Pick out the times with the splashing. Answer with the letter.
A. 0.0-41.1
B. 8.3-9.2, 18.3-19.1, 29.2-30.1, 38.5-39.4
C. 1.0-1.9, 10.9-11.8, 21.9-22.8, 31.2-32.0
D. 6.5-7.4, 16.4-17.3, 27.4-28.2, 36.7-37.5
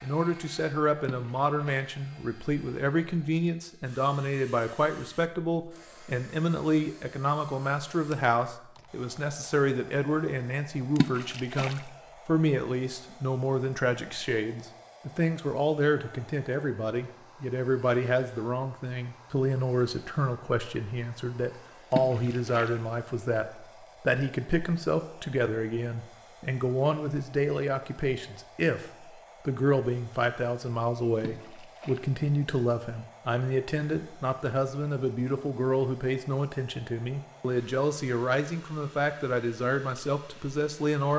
C.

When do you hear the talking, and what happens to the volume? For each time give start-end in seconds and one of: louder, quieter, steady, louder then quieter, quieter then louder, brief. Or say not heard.
0.0-41.1 steady.